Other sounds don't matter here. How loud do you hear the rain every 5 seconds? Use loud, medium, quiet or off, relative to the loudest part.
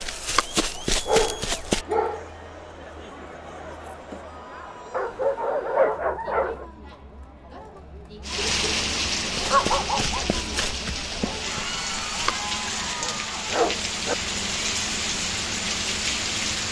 off, loud, loud, loud.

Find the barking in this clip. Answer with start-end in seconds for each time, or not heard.
1.1-2.3, 4.9-6.7, 8.3-10.2, 12.9-14.2.